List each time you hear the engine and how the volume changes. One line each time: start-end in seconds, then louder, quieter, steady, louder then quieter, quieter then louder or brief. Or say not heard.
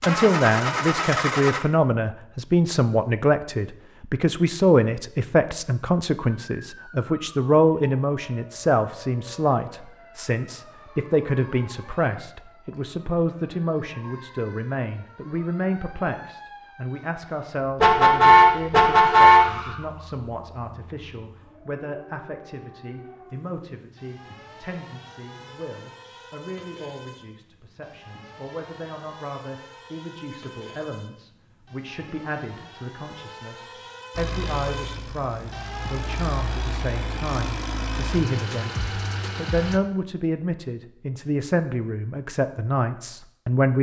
0.0-1.6 brief
34.1-39.8 louder.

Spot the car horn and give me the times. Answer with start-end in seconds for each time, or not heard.
17.8-19.8.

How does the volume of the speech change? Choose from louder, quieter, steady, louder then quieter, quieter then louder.
quieter then louder.